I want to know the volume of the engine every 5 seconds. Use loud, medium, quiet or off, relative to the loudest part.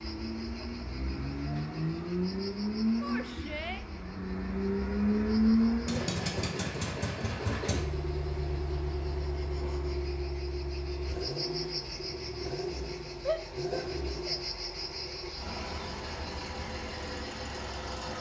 loud, loud, medium, medium.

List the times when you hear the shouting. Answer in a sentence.
The shouting can be heard from 3.0 to 3.9 s and from 13.2 to 14.4 s.